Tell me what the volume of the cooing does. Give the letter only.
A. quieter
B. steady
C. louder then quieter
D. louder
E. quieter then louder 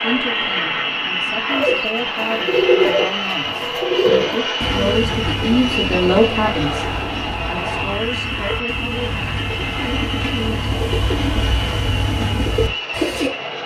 E.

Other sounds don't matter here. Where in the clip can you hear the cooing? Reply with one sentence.
The cooing can be heard from 1.5 to 13.3 s.